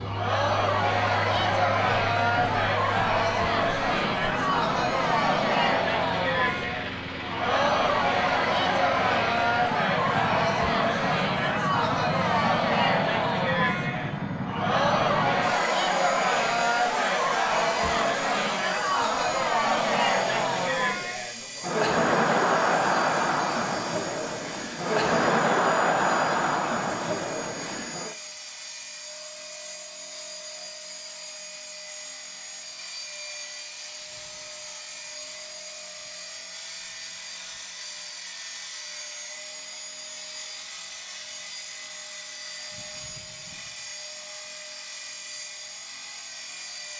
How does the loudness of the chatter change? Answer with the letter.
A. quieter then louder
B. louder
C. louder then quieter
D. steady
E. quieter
D.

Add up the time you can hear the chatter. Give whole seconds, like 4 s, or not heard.
28 s.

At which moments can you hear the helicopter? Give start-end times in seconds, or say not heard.
0.0-46.9.